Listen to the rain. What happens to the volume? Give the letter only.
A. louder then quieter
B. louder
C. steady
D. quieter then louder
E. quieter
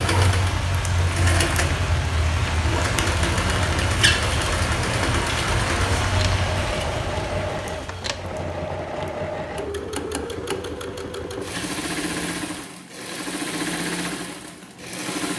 E.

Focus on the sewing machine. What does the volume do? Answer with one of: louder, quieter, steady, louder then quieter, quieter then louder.
steady.